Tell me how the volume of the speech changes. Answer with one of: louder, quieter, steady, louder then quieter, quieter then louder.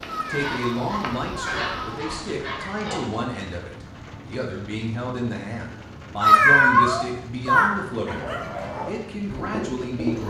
steady.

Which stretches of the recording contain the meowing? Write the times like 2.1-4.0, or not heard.
0.1-2.7, 6.2-7.7.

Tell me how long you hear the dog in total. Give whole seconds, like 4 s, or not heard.
5 s.